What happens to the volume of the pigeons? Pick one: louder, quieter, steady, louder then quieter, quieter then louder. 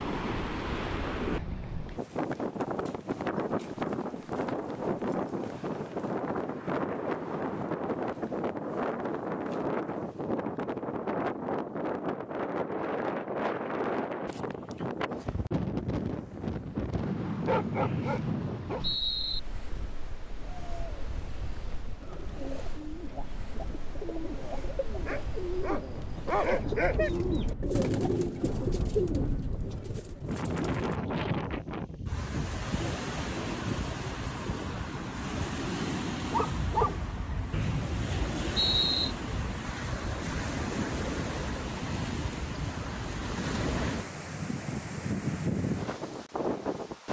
louder.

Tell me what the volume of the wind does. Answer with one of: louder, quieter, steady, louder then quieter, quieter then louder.
quieter then louder.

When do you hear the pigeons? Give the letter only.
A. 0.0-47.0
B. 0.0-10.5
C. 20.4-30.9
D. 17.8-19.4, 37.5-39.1
C.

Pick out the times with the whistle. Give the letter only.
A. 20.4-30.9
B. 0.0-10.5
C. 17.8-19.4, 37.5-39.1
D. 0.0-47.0
C.